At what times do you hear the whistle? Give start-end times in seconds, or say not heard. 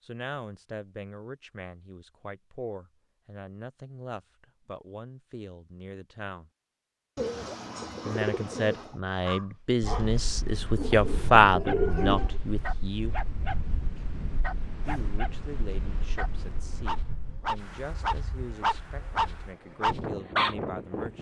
not heard.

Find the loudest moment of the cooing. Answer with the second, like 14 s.
12 s.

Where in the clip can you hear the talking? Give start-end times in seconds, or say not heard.
0.0-6.5, 8.1-13.2, 14.8-21.1.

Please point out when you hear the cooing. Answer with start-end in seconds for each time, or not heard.
7.2-8.9, 10.8-12.4.